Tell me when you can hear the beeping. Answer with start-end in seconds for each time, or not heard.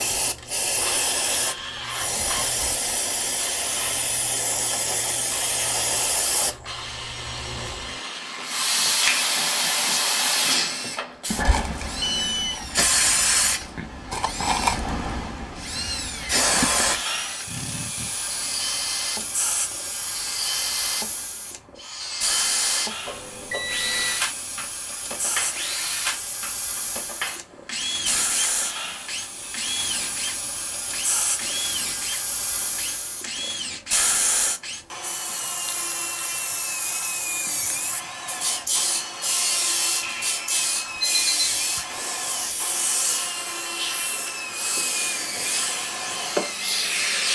12.0-12.6, 23.1-24.2, 40.0-42.0.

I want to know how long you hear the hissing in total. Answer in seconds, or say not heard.
47 s.